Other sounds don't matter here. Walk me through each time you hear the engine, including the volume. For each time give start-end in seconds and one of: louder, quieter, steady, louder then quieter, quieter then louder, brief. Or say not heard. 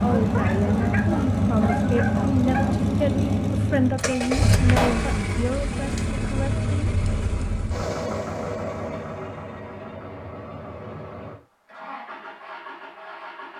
0.0-13.5 quieter.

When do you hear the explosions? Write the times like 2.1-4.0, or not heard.
4.7-5.2.